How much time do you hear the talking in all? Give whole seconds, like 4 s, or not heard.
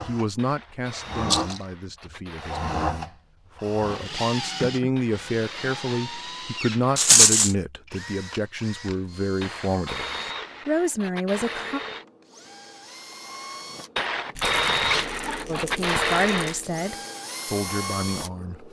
14 s.